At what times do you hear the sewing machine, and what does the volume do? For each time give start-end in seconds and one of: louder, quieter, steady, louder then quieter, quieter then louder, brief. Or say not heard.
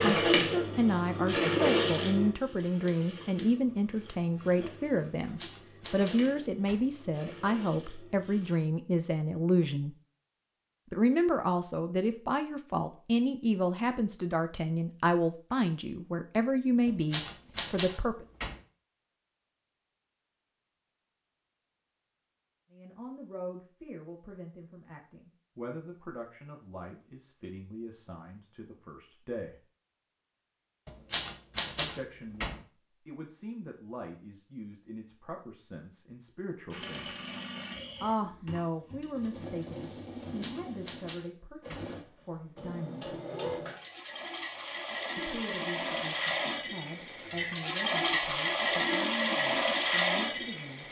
0.0-8.6 quieter
36.7-50.8 louder.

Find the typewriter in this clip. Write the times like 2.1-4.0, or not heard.
5.2-6.8, 16.9-18.6, 30.9-32.5, 40.4-41.9.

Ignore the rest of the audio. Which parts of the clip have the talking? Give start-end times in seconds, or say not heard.
0.0-9.9, 10.9-18.2, 22.7-29.6, 31.8-37.1, 38.0-43.1, 45.1-50.8.